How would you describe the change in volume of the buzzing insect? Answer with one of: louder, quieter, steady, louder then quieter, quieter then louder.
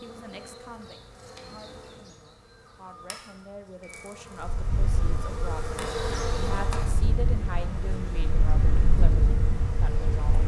louder then quieter.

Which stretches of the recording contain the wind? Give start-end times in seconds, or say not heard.
4.4-10.4.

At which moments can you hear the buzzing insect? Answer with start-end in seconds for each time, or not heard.
0.0-10.4.